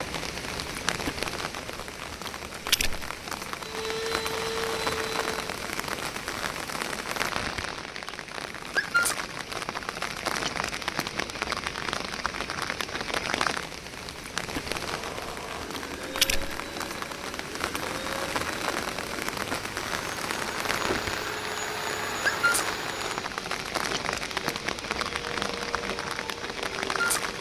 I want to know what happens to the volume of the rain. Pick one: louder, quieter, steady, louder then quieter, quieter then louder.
steady.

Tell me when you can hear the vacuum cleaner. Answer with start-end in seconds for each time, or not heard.
3.6-5.5, 14.8-27.3.